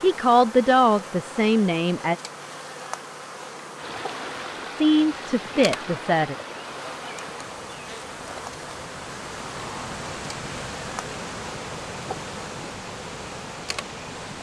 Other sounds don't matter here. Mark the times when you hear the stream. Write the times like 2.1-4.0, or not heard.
3.8-14.3.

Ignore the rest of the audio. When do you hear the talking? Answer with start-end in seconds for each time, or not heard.
0.0-2.1, 4.7-6.3.